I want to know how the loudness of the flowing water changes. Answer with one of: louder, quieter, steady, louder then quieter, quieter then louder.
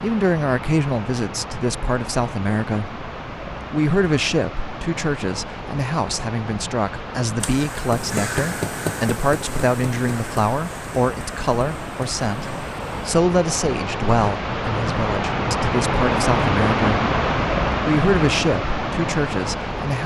louder.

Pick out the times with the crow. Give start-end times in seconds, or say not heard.
7.4-12.9.